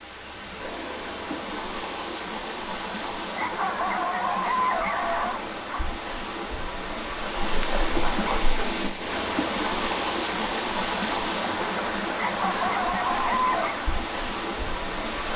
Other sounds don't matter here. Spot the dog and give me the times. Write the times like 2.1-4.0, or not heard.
3.4-5.8, 12.2-13.8.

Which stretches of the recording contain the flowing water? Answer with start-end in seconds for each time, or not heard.
0.0-15.3.